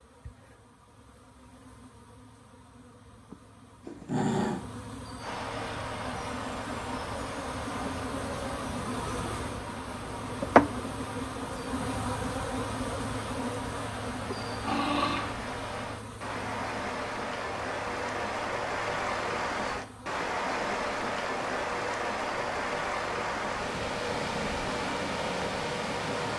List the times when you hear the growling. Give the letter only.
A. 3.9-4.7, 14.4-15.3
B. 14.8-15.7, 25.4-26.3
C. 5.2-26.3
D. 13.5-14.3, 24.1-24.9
A.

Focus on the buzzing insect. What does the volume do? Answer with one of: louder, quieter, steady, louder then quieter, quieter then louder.
louder then quieter.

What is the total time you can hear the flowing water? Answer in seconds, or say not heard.
21 s.